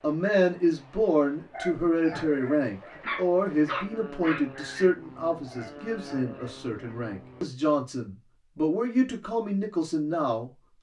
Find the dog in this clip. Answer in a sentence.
The dog can be heard from 1.5 to 7.0 s.